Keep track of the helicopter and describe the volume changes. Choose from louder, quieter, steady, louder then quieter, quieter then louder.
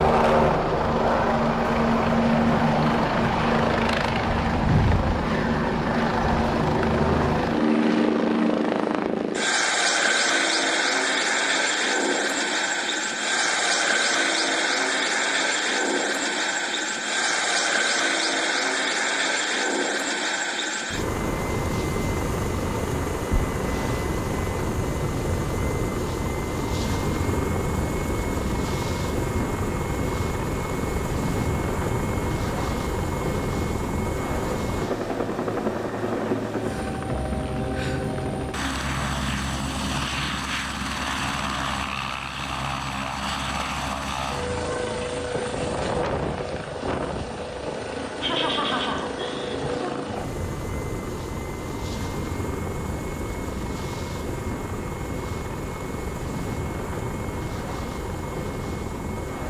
quieter.